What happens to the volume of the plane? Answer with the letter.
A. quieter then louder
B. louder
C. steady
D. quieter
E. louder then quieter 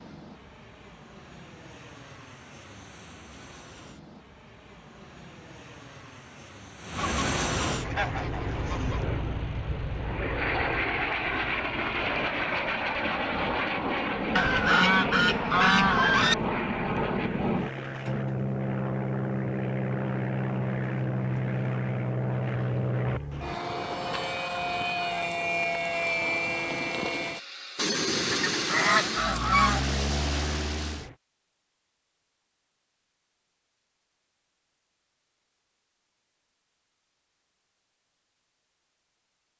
B.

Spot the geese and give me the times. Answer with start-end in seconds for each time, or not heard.
7.0-9.1, 14.3-16.4, 28.3-29.9.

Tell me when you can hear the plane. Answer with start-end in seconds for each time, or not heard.
0.0-31.1.